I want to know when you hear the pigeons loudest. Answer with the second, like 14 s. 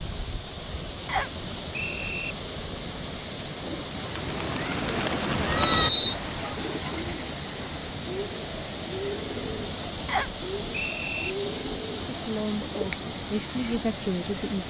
6 s.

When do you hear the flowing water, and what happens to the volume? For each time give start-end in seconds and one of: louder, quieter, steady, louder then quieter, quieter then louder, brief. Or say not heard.
0.0-14.6 steady.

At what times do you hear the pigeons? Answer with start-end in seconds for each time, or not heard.
3.6-13.1.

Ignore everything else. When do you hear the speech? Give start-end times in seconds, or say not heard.
12.1-14.6.